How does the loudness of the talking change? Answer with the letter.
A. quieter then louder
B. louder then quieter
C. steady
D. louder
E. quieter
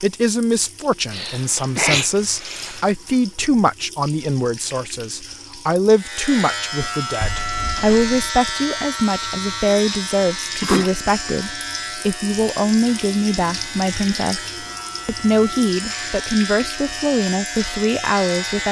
C.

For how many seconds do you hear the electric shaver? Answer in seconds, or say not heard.
13 s.